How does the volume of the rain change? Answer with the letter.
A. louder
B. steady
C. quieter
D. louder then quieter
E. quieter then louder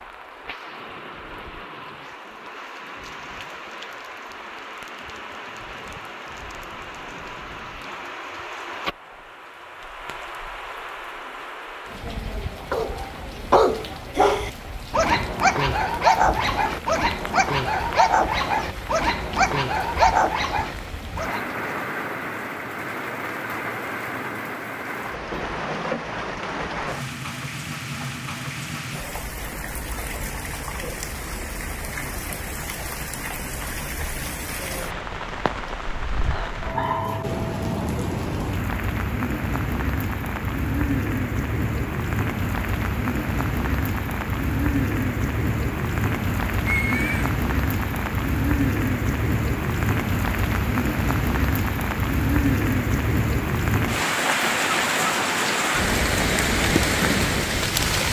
A.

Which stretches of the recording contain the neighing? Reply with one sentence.
You can hear the neighing from 46.6 to 47.3 s.